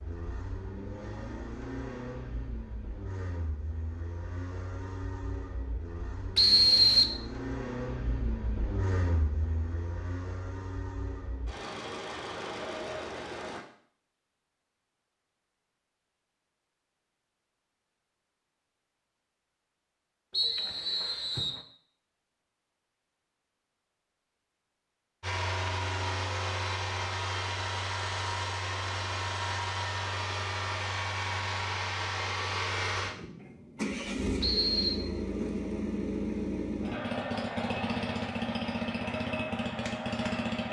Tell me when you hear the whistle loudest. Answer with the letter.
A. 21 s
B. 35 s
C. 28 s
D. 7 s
D.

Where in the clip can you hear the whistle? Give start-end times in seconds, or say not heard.
6.3-7.2, 20.3-21.6, 34.4-35.0.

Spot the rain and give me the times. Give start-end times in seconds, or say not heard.
not heard.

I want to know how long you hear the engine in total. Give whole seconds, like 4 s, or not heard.
29 s.